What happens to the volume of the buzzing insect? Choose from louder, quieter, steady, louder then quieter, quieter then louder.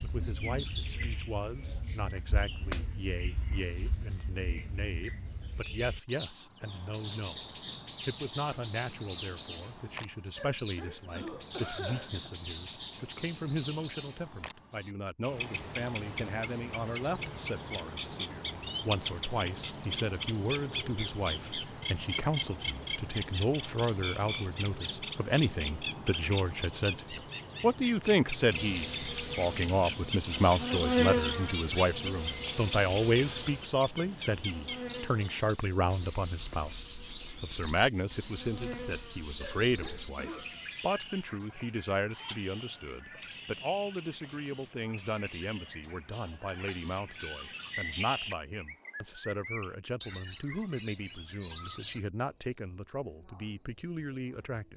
quieter then louder.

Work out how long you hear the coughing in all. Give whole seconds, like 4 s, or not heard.
3 s.